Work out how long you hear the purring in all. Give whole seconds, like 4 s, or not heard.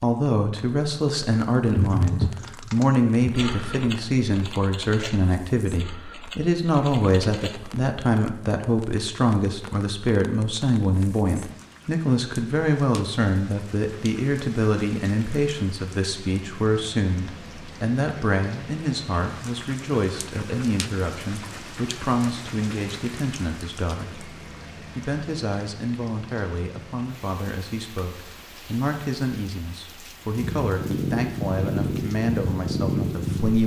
3 s.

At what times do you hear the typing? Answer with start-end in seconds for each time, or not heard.
1.8-8.2.